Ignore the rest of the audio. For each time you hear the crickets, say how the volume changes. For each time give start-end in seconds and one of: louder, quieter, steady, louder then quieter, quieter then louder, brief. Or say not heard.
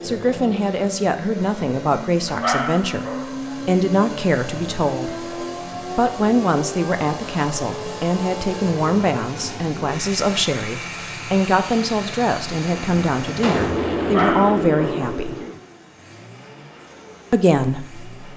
not heard.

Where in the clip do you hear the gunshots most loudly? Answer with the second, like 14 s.
14 s.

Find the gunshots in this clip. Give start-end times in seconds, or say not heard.
12.8-15.6.